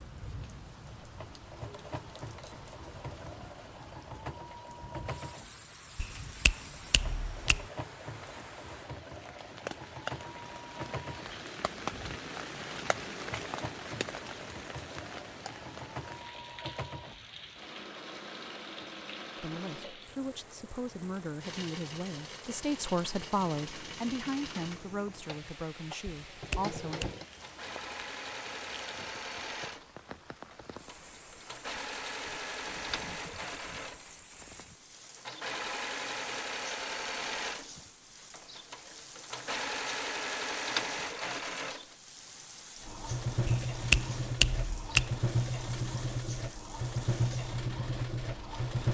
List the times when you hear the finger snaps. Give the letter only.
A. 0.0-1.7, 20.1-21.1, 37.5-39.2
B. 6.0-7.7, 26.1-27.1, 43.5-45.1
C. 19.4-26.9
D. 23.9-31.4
B.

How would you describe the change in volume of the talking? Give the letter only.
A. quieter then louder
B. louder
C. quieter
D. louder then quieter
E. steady
D.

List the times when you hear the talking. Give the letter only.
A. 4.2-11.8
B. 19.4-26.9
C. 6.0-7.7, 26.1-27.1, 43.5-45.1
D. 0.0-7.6
B.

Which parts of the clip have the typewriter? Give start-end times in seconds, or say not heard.
not heard.